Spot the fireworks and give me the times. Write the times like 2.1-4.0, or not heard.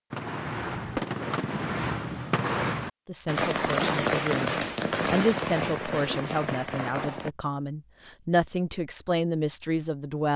0.1-7.3.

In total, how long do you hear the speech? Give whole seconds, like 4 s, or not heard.
7 s.